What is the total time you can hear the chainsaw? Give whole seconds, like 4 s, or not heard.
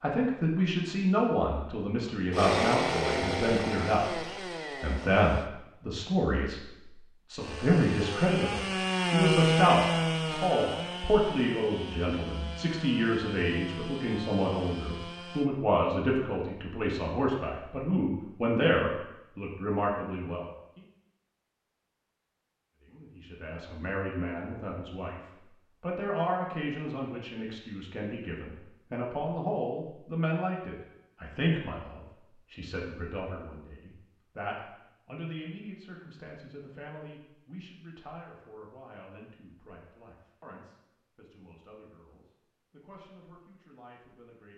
11 s.